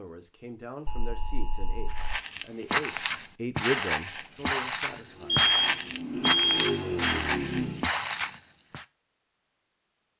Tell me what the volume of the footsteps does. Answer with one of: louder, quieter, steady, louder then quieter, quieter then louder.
steady.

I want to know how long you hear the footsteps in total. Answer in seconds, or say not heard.
7 s.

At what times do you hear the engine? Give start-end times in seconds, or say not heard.
4.9-7.8.